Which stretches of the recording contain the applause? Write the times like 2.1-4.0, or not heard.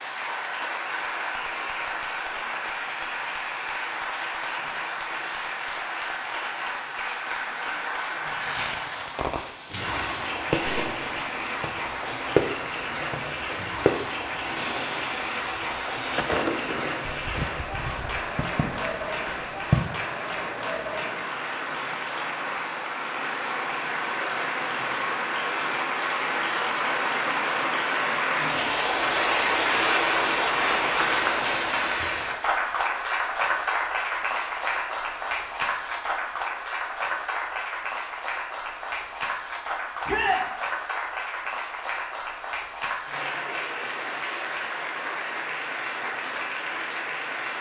0.0-47.5.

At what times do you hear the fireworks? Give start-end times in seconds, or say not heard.
8.3-19.9.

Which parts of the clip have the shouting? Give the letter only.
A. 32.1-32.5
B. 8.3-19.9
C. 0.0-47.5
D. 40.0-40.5
D.